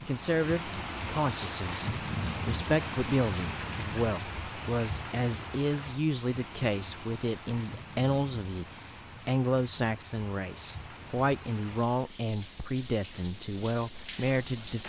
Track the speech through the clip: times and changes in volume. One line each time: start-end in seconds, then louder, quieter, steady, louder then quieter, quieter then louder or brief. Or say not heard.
0.0-14.8 steady.